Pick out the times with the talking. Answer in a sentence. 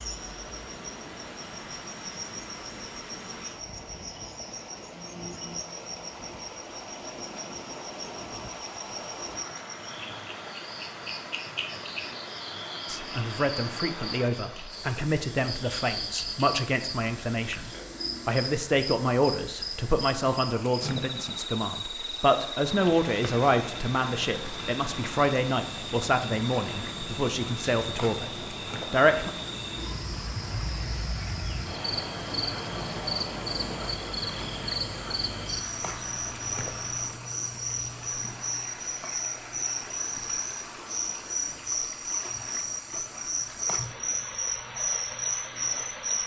The talking can be heard from 12.8 to 29.3 s.